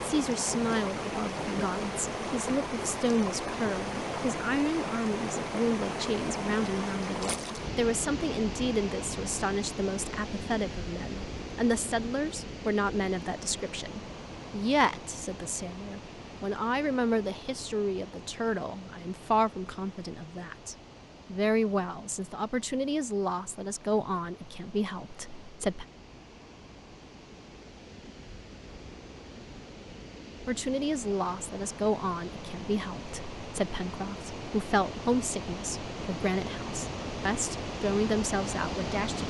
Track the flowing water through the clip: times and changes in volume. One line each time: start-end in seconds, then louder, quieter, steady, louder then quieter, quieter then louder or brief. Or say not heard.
0.0-39.2 quieter then louder.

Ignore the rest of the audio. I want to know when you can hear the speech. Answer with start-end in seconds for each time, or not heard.
0.0-25.9, 30.4-39.2.